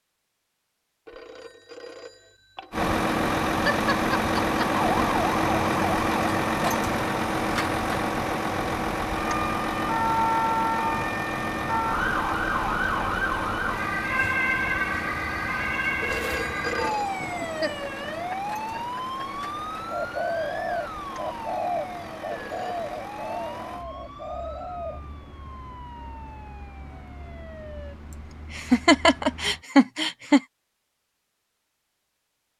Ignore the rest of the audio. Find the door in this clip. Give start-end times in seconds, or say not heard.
not heard.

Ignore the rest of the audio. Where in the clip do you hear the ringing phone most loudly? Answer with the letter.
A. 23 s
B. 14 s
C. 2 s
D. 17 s
D.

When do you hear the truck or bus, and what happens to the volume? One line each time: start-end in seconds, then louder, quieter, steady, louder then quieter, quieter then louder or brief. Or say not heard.
2.7-29.6 quieter.